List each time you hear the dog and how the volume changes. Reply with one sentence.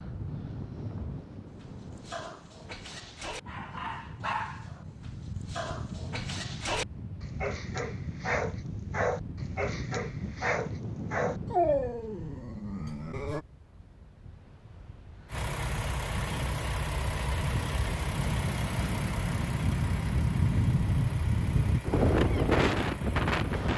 You can hear the dog from 1.5 to 13.4 s, getting louder.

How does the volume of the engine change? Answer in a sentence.
The loudness of the engine goes down.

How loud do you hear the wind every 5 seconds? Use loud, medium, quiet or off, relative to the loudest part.
quiet, quiet, quiet, medium, loud.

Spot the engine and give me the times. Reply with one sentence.
The engine can be heard from 15.2 to 23.7 s.